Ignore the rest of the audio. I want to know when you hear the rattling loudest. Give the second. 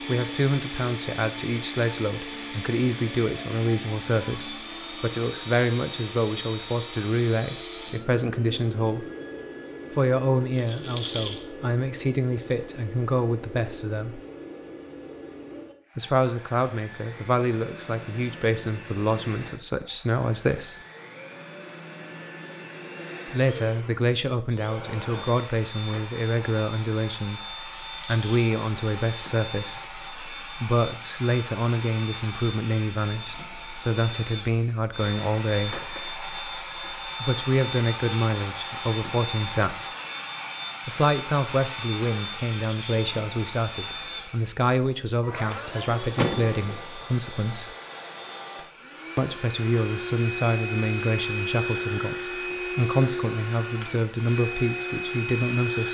11 s.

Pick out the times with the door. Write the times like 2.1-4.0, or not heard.
46.1-46.8.